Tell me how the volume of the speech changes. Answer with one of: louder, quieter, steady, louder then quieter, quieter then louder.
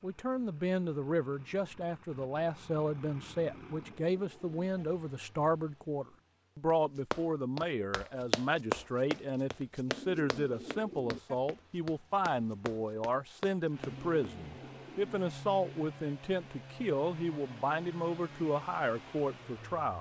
steady.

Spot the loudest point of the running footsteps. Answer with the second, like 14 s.
9 s.